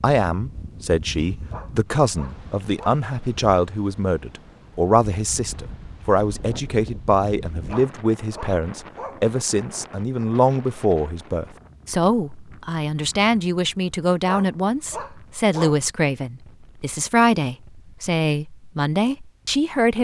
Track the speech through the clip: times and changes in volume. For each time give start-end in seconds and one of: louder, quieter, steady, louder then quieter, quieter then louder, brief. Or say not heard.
0.0-19.9 steady.